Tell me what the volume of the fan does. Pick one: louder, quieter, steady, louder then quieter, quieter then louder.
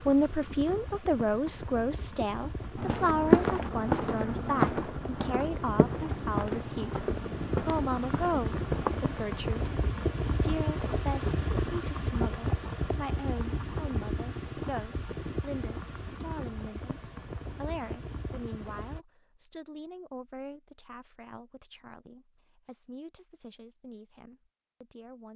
louder then quieter.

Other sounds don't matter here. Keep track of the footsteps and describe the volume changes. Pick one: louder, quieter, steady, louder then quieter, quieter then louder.
quieter.